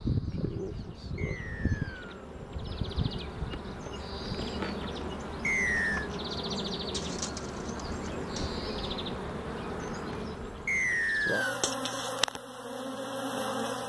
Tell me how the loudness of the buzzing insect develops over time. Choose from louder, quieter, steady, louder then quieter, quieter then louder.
steady.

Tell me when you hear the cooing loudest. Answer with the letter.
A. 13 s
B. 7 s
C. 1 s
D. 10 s
B.